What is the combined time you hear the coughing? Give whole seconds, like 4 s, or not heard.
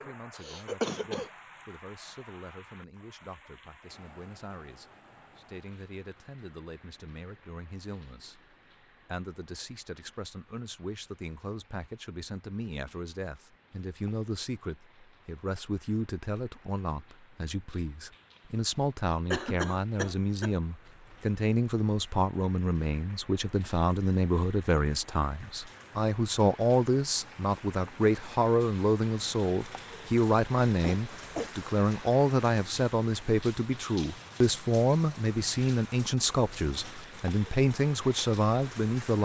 3 s.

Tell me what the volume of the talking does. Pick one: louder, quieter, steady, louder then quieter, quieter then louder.
louder.